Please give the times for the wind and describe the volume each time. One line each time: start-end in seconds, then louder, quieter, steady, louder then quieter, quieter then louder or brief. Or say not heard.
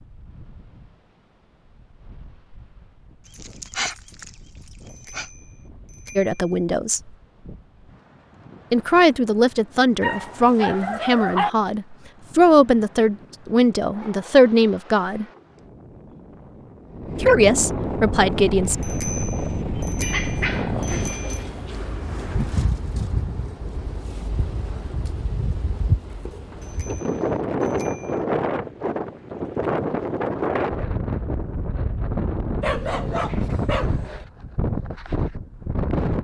0.0-36.1 louder.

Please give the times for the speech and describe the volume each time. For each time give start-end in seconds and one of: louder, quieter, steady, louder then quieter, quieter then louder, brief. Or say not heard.
6.2-7.0 brief
8.7-15.2 steady
17.2-18.8 brief.